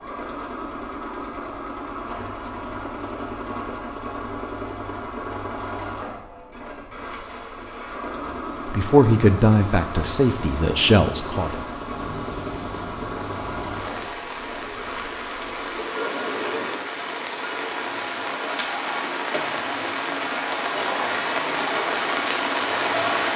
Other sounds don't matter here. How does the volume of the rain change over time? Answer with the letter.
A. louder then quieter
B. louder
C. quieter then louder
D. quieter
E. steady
B.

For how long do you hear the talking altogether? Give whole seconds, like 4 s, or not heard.
3 s.